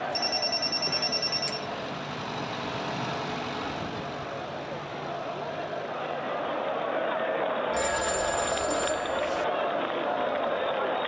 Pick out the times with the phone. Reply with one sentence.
You can hear the phone from 0.1 to 1.6 s and from 7.7 to 9.4 s.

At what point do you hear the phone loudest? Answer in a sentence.
The volume of the phone peaks at 1 second.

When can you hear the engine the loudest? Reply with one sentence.
The loudest moment of the engine is at 3 seconds.